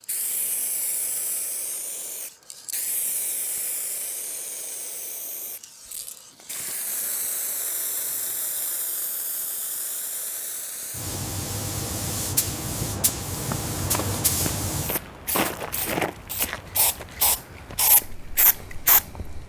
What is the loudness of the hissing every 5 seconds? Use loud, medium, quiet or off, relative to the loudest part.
medium, medium, loud, loud.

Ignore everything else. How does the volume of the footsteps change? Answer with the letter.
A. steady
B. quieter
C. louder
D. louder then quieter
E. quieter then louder
D.